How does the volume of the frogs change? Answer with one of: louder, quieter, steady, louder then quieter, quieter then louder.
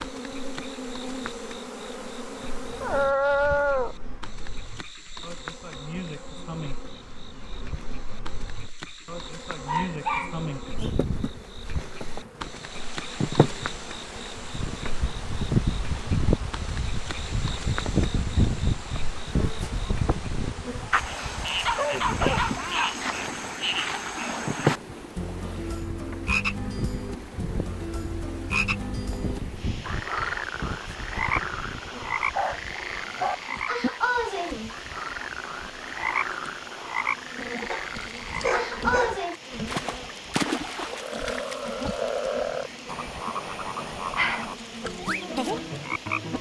louder.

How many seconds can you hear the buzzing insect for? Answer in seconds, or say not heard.
46 s.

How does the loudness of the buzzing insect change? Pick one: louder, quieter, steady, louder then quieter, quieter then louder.
louder then quieter.